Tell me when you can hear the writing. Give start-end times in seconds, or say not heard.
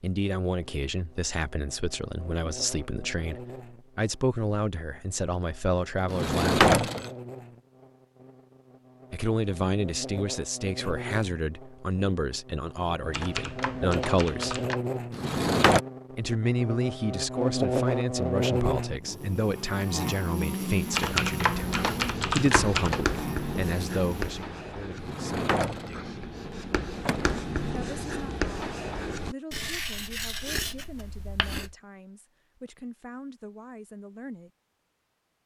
21.4-31.8.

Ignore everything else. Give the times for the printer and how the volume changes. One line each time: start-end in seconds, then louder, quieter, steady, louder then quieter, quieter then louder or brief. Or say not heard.
not heard.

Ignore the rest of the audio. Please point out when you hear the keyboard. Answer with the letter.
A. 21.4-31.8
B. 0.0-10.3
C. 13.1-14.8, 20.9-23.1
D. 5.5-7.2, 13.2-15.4
C.